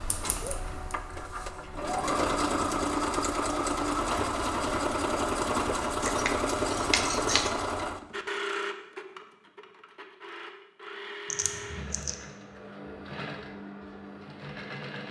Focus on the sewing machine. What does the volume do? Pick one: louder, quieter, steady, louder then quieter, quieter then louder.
quieter.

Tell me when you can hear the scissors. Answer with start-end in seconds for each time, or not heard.
0.1-0.9, 6.0-7.5, 11.3-12.2.